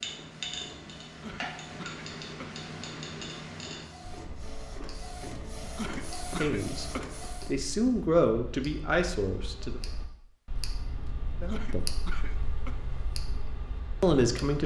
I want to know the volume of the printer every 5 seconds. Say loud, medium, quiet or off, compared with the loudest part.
medium, loud, off.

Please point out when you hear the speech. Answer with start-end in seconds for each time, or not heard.
6.3-9.8, 11.4-11.9, 14.0-14.6.